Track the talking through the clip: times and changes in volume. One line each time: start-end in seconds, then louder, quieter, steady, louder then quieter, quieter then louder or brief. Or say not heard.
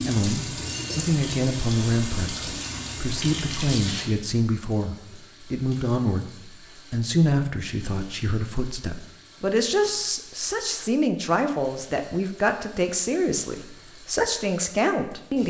0.0-15.4 steady.